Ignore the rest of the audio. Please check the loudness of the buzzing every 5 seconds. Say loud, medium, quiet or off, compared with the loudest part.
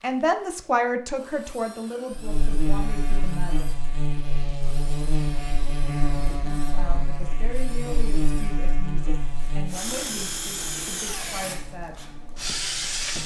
loud, loud, quiet.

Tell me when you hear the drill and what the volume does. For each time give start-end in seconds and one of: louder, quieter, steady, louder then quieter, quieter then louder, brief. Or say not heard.
0.0-13.2 louder.